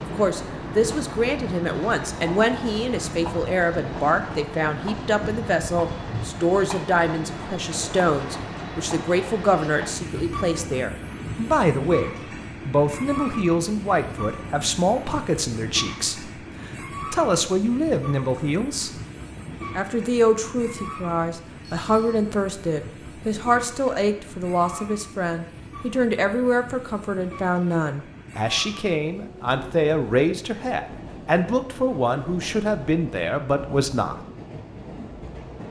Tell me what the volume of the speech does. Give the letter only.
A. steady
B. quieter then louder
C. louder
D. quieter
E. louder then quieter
A.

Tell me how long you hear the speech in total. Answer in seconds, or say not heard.
33 s.